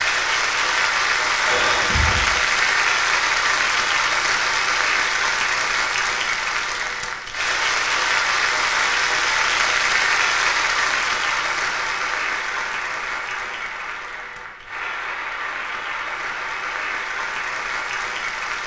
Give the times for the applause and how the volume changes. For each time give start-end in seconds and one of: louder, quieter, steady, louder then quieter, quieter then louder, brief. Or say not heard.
0.0-18.6 quieter.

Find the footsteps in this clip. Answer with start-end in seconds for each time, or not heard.
not heard.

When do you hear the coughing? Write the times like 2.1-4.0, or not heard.
1.4-2.4.